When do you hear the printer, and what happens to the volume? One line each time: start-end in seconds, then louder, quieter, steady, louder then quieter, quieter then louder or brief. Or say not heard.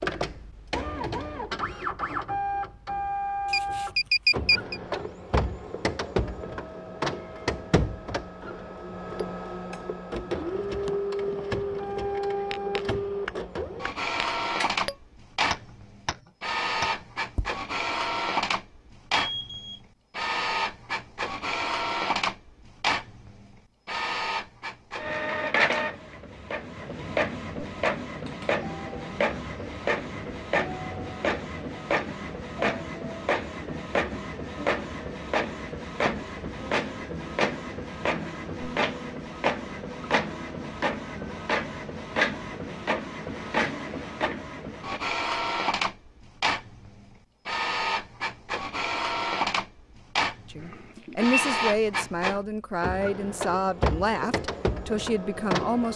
0.0-55.9 steady.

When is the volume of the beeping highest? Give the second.
4 s.